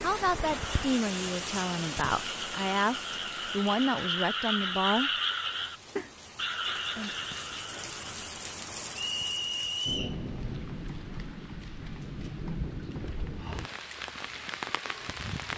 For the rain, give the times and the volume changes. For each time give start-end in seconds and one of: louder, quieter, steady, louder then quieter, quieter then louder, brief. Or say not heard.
0.0-15.5 quieter then louder.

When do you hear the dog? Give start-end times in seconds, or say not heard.
not heard.